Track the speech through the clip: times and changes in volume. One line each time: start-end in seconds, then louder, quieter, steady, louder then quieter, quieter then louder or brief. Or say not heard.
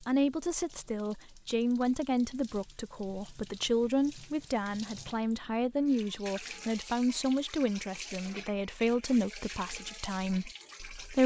0.0-11.2 steady.